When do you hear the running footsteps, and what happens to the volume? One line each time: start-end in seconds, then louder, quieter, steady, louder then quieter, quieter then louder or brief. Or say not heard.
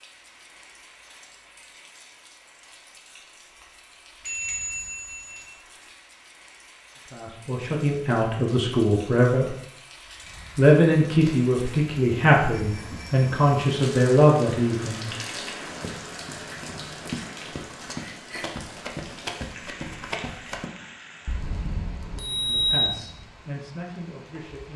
15.7-20.7 louder.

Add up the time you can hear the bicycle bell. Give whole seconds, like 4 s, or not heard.
4 s.